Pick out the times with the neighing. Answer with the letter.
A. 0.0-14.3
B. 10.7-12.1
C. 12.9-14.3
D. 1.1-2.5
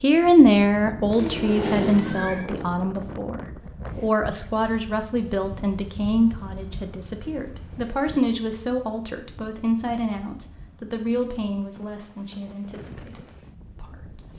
D.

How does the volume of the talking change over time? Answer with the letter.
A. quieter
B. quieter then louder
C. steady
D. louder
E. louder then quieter
A.